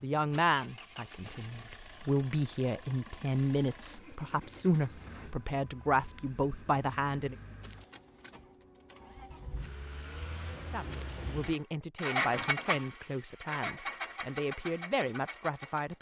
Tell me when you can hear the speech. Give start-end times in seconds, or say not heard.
0.0-7.3, 10.6-15.9.